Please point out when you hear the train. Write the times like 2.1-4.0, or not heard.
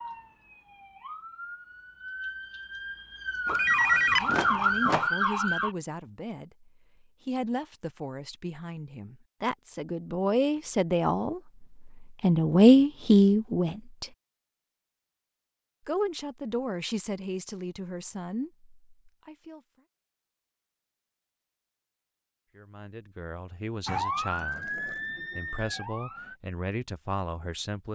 not heard.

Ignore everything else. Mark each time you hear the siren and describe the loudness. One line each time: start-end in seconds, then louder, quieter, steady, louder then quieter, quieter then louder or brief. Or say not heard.
0.0-5.8 louder
23.9-26.4 brief.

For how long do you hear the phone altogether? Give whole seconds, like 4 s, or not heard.
2 s.